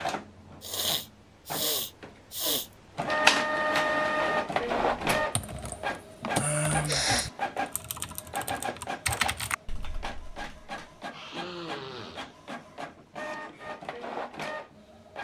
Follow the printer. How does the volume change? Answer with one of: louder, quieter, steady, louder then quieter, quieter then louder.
louder then quieter.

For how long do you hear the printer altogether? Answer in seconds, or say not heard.
15 s.